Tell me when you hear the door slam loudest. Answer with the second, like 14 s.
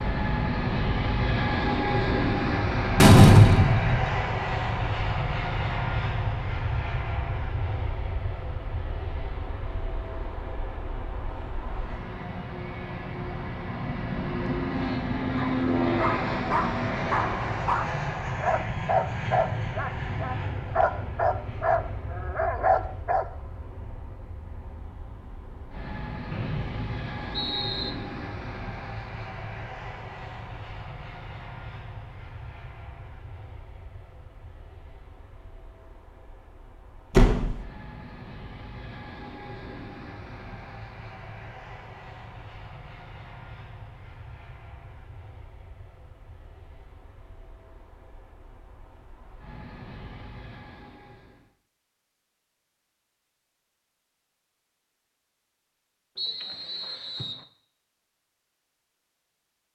3 s.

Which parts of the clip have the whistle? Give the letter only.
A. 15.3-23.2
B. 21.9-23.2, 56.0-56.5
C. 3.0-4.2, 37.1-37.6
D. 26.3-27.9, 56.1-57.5
D.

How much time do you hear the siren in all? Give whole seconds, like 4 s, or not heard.
not heard.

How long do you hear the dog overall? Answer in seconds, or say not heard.
8 s.